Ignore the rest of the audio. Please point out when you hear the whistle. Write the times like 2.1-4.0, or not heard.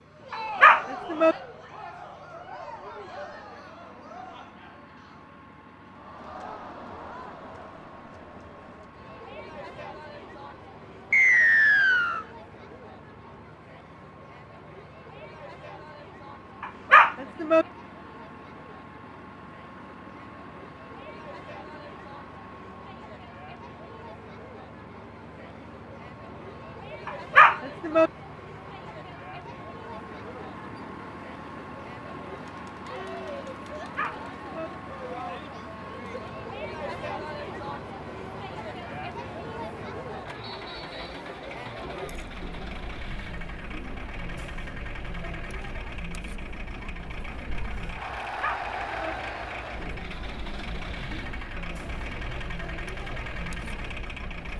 11.1-12.2, 40.4-41.2.